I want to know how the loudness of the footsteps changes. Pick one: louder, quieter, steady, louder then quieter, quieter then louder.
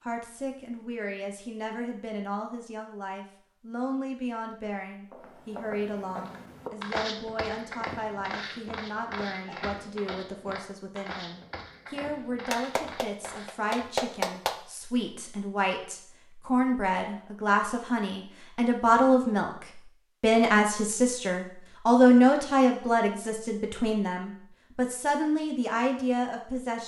quieter.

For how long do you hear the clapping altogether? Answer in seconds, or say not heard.
2 s.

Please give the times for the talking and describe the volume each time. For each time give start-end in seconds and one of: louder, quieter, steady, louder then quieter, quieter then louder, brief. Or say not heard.
0.0-26.8 louder.